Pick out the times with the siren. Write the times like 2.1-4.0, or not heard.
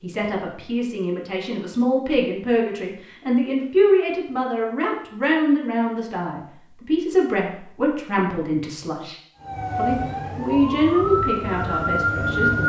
9.3-12.6.